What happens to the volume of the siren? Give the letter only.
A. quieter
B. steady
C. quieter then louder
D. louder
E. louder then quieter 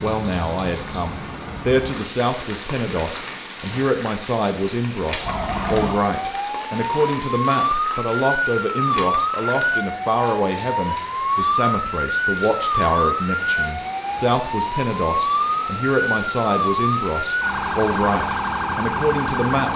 B.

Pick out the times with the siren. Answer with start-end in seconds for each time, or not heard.
5.2-19.7.